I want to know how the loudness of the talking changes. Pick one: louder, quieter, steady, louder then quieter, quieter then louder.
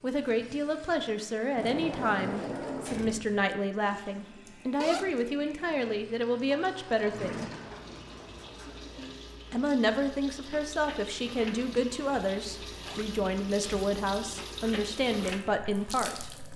steady.